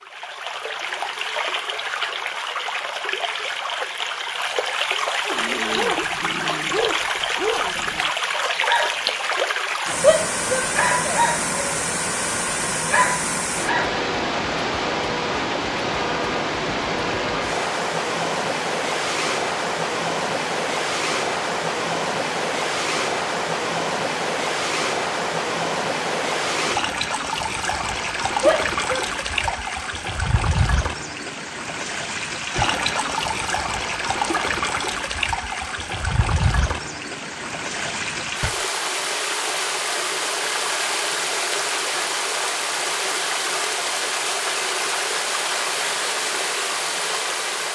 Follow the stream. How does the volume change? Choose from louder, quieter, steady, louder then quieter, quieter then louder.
steady.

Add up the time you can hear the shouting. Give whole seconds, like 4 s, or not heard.
2 s.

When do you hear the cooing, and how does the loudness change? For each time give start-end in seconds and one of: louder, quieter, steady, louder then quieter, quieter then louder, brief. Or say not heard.
not heard.